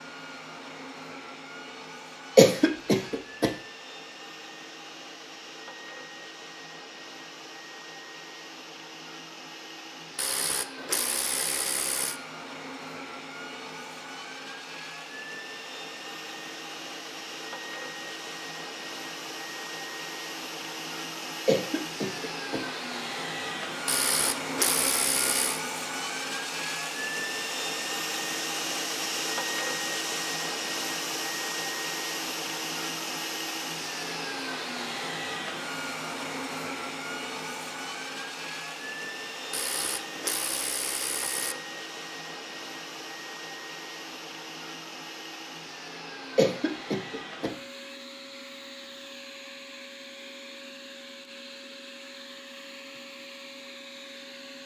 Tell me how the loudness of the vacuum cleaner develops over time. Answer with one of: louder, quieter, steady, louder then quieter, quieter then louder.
louder then quieter.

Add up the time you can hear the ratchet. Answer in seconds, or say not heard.
6 s.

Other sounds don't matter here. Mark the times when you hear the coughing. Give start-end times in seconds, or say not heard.
2.4-3.5, 21.4-22.6, 46.4-47.5.